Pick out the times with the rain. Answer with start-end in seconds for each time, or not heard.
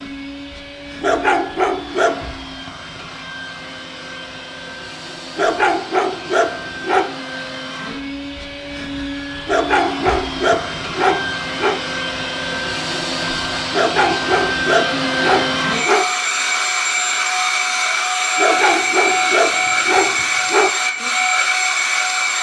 not heard.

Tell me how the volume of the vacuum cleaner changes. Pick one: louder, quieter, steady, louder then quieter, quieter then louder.
louder.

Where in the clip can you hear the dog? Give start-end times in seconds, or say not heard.
1.0-2.4, 5.3-7.1, 9.4-11.8, 13.7-16.1, 18.4-20.7.